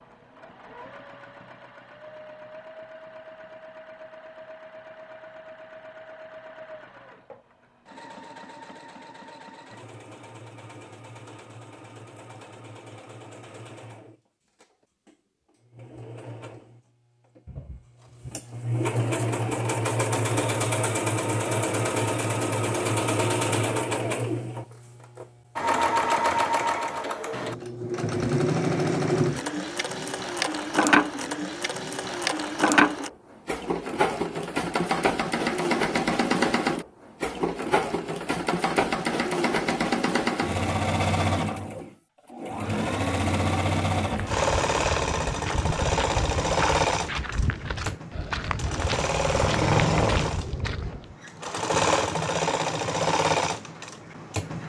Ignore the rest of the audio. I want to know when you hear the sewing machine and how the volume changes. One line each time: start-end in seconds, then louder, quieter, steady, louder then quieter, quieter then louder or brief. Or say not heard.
0.0-54.6 louder.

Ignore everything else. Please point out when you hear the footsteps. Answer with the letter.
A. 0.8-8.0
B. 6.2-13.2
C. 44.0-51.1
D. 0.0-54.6
C.